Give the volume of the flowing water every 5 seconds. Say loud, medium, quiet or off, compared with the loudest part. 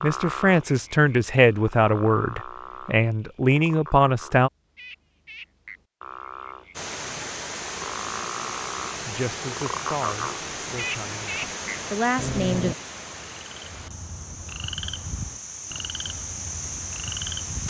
off, loud, loud, loud.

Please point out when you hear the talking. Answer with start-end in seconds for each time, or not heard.
0.0-4.5, 9.1-12.8.